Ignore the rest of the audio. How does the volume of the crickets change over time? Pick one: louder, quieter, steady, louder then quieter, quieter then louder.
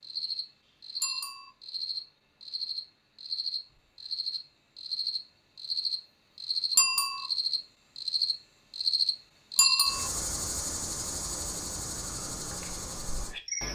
louder then quieter.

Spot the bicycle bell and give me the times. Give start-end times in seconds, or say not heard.
1.0-1.5, 6.8-7.2, 9.6-10.1.